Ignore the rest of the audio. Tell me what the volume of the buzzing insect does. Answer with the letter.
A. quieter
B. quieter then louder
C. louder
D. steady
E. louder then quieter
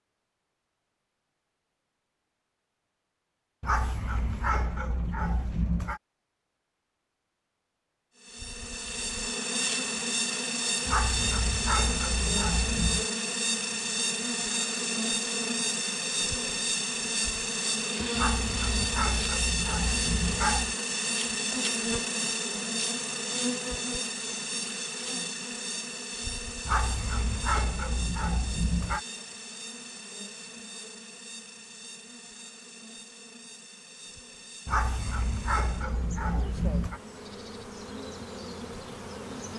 A.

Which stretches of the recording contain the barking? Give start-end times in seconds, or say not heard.
3.6-6.0, 10.8-13.1, 18.1-20.8, 26.6-29.0, 34.6-37.0.